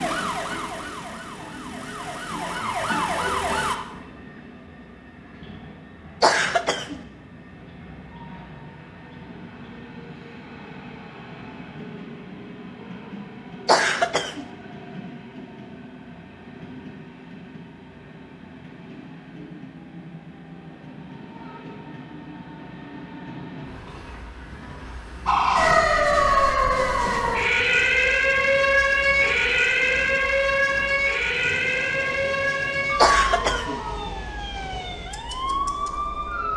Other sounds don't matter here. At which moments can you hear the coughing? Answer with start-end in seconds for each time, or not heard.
6.2-7.0, 13.7-14.4, 33.0-33.8.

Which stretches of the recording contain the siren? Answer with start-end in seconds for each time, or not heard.
0.0-3.8, 25.2-36.5.